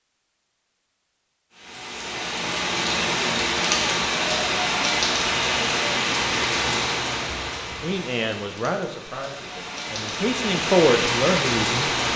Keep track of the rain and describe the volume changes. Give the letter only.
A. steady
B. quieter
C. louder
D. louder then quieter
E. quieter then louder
E.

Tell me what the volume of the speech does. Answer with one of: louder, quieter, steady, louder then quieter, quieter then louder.
quieter then louder.